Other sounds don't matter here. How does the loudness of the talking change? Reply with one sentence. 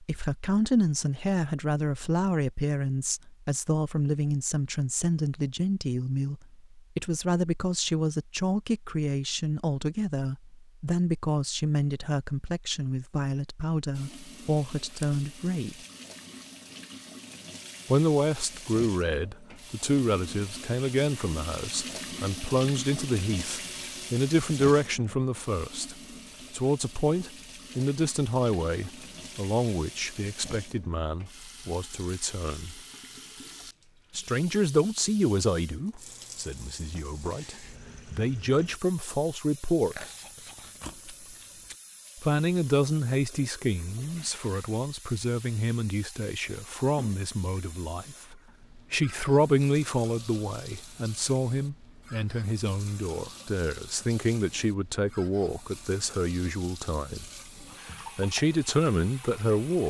The loudness of the talking stays about the same.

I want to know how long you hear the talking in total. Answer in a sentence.
You can hear the talking for 54 seconds altogether.